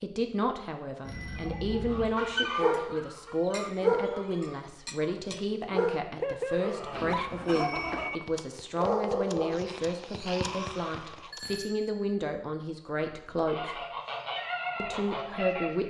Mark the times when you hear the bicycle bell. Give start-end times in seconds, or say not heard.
1.1-2.0, 6.9-8.1, 11.3-12.1.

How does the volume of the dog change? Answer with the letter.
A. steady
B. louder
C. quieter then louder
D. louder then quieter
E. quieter
E.